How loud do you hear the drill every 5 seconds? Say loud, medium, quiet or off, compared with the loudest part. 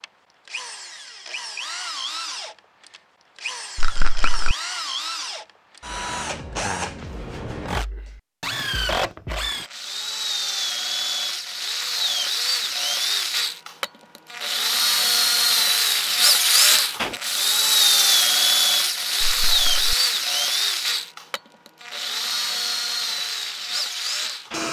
quiet, medium, medium, loud, medium.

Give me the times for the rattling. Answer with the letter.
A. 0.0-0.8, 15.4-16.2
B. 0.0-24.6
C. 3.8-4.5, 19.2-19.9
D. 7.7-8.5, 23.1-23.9
C.